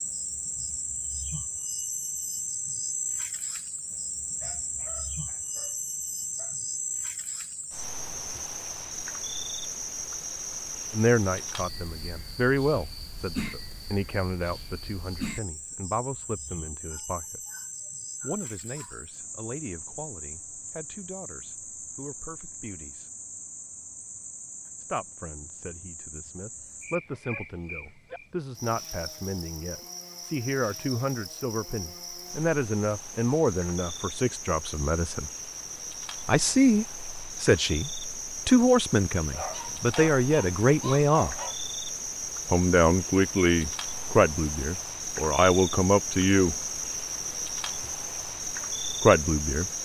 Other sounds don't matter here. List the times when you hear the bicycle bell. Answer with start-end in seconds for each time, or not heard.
not heard.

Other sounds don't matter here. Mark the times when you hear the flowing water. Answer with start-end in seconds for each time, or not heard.
not heard.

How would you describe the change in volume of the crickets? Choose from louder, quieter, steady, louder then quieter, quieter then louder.
quieter then louder.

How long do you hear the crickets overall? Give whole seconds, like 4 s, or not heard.
50 s.